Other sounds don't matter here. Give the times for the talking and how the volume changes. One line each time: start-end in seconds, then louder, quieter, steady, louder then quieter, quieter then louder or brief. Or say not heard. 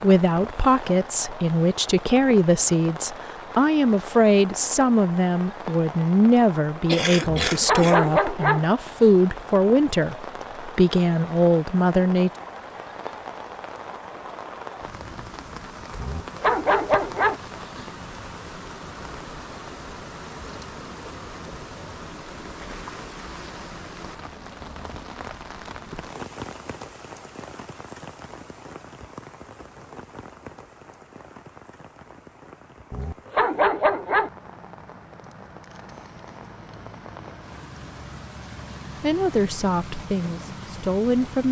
0.0-12.3 steady
39.0-41.4 brief.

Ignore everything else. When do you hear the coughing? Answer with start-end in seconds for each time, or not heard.
6.8-8.0.